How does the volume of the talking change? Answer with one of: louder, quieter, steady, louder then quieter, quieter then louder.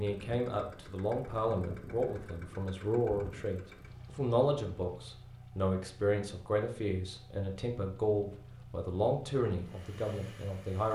steady.